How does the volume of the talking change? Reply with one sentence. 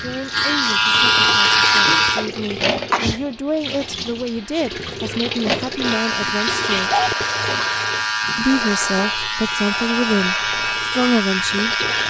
The volume of the talking goes up.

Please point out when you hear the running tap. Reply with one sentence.
The running tap can be heard from 0.0 to 12.0 s.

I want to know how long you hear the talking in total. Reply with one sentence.
The talking can be heard for 10 seconds in total.